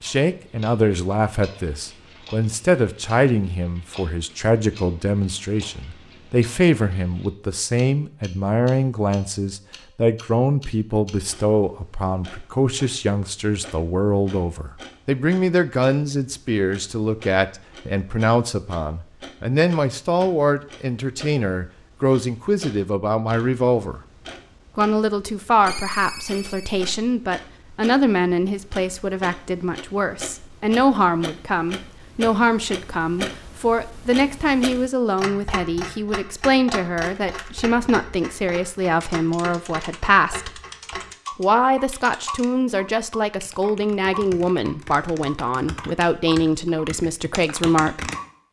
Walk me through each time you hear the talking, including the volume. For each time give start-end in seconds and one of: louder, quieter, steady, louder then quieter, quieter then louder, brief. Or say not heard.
0.0-24.0 steady
24.8-40.5 steady
41.4-48.1 steady.